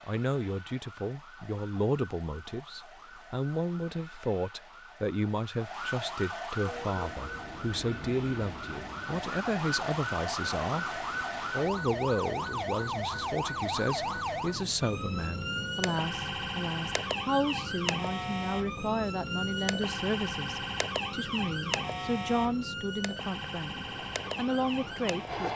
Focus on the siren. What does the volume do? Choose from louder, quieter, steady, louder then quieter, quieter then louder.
louder.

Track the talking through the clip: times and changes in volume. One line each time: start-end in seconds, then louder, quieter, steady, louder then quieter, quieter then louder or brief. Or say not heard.
0.1-25.5 steady.